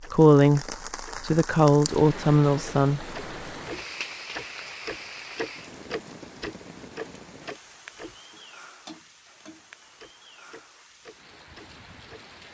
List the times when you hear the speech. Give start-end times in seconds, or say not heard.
0.1-3.0.